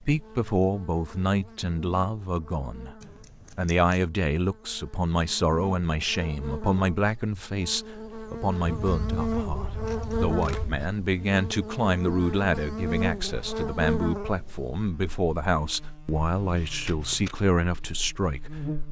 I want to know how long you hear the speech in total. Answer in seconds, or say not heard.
18 s.